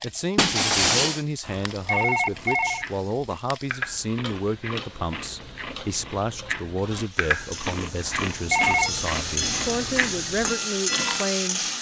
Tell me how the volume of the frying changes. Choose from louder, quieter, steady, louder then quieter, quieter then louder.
louder.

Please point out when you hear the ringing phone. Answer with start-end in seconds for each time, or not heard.
1.4-2.9, 8.1-8.9.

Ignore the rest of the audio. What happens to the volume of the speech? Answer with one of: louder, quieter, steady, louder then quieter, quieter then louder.
steady.